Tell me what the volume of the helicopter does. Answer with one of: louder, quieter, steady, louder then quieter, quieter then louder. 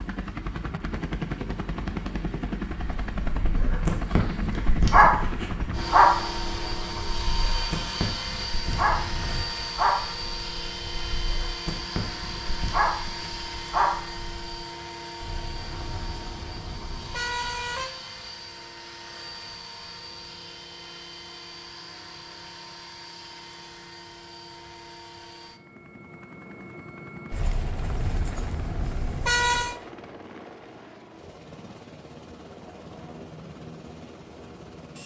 quieter.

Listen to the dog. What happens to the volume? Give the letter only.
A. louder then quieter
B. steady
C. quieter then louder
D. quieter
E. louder
C.